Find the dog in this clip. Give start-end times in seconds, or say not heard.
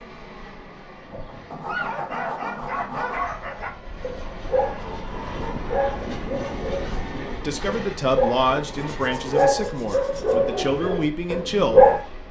1.1-12.0.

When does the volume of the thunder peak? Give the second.
6 s.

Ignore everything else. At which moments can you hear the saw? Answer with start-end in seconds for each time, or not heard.
1.5-3.2, 8.8-10.3.